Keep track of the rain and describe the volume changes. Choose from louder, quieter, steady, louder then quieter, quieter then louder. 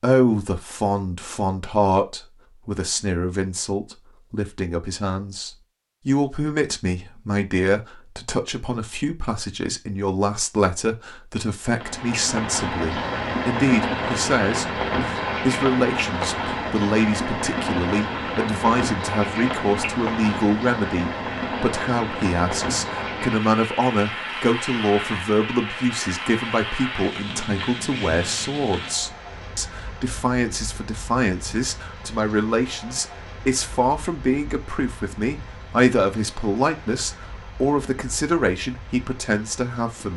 quieter.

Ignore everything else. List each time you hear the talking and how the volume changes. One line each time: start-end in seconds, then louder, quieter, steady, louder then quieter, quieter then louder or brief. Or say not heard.
0.0-40.1 steady.